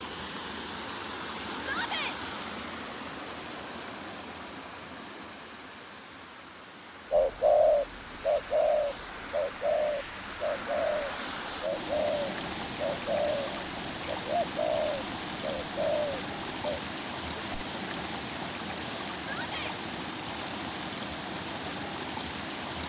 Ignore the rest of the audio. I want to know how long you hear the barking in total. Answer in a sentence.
You can't hear the barking here.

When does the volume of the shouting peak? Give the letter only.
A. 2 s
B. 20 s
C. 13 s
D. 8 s
A.